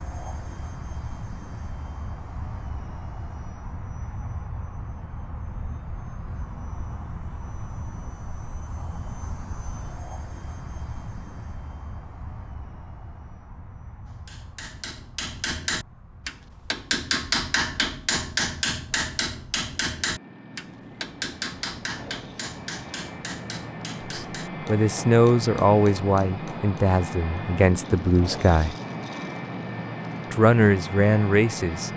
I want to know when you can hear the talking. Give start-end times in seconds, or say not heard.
24.1-28.8, 30.3-31.9.